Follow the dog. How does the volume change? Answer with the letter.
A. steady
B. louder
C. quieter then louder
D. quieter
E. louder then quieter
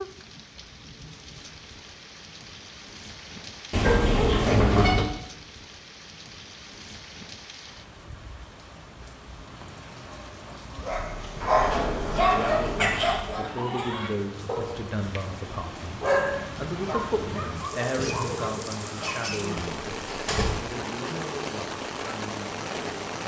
D.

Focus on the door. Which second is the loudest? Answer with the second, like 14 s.
5 s.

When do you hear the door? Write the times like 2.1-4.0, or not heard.
3.7-5.0, 11.1-13.3, 19.6-20.6.